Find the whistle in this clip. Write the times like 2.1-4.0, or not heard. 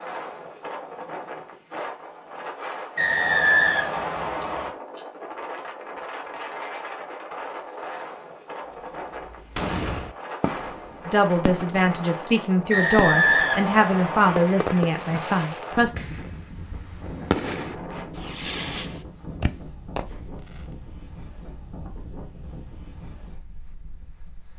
3.0-4.7, 12.7-14.4.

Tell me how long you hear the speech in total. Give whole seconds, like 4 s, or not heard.
5 s.